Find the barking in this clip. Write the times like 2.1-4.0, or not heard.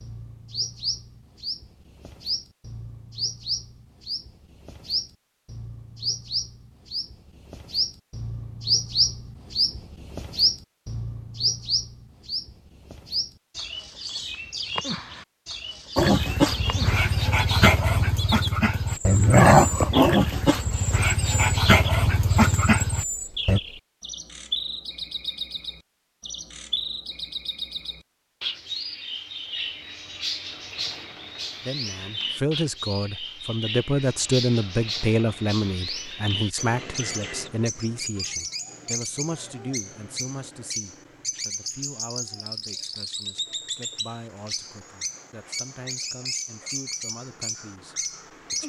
15.9-23.6.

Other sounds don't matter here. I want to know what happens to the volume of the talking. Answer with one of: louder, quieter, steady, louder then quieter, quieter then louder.
quieter.